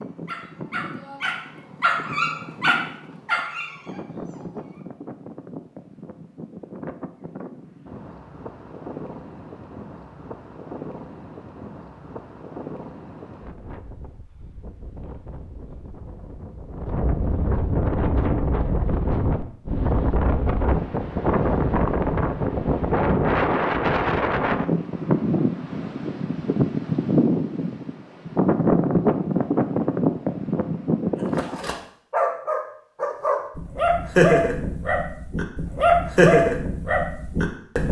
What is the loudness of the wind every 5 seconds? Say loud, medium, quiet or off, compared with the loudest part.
quiet, quiet, quiet, medium, loud, loud, loud, off.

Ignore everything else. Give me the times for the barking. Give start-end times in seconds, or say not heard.
0.0-4.8, 31.4-37.8.